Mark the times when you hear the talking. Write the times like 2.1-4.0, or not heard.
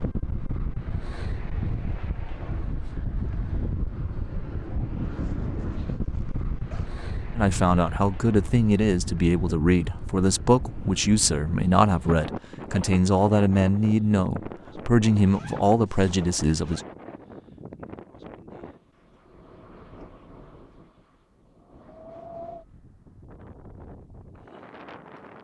7.3-16.8.